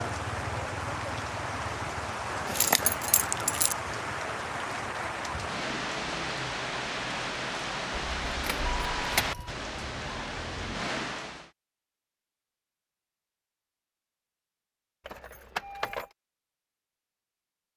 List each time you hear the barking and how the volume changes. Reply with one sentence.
The barking can't be heard in this clip.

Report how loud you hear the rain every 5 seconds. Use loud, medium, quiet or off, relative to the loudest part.
loud, loud, loud, off.